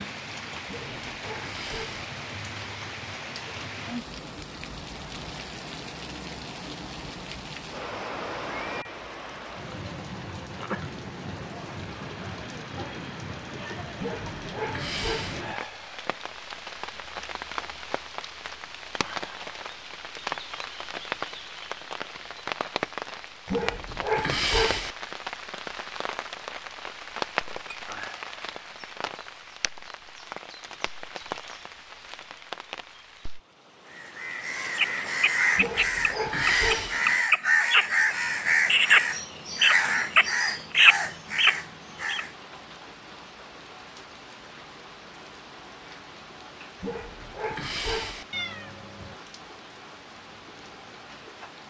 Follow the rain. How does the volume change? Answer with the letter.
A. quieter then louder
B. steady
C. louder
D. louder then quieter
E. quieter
E.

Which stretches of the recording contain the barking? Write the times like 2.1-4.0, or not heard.
0.7-2.0, 13.9-15.4, 23.4-24.9, 35.5-37.0, 46.8-48.2.